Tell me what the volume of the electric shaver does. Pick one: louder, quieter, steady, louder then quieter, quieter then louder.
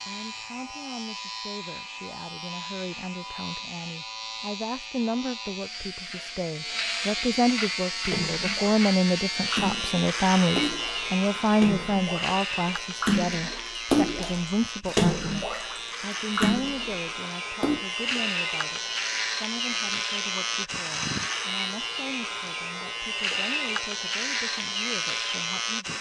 louder.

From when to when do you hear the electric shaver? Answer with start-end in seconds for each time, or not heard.
0.0-25.9.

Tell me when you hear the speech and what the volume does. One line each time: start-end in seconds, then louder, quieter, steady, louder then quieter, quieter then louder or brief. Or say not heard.
0.0-25.9 louder then quieter.